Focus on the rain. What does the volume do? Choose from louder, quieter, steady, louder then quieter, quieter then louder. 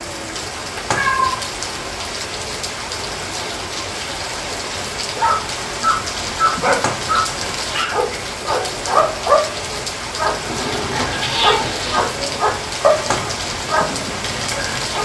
steady.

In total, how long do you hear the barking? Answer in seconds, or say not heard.
10 s.